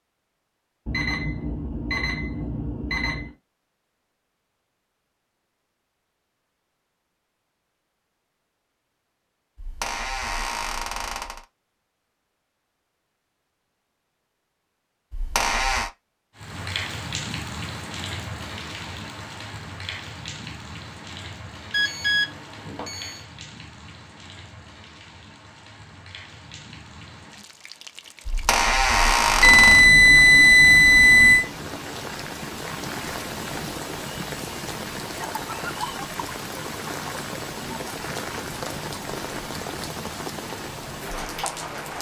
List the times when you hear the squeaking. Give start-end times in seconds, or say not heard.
9.6-11.4, 15.1-15.9, 28.2-29.9.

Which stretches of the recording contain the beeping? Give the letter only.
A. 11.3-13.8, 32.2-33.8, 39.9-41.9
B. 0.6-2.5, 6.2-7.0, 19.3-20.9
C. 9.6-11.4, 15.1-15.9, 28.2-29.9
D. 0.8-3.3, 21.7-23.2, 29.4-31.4
D.